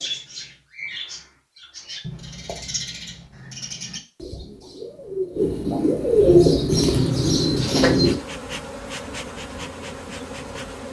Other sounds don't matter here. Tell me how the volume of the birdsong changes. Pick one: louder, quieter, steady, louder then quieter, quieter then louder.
louder.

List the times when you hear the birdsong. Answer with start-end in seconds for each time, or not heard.
0.0-8.2.